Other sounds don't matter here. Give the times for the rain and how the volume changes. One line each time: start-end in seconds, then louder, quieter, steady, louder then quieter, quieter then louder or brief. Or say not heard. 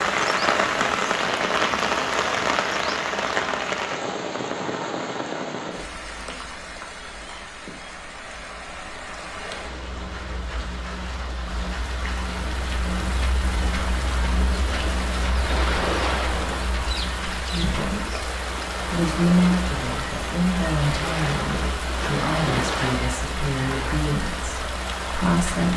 0.0-25.7 quieter then louder.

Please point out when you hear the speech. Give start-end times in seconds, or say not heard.
17.5-25.7.